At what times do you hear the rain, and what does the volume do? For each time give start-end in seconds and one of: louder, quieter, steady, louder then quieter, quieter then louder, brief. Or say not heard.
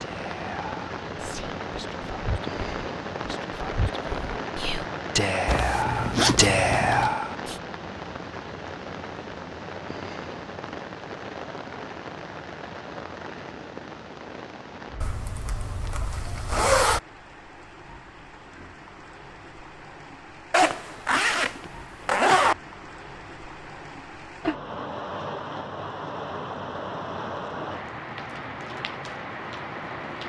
0.0-30.2 quieter then louder.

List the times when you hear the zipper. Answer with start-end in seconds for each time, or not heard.
5.5-7.2, 15.0-17.0, 20.5-22.6.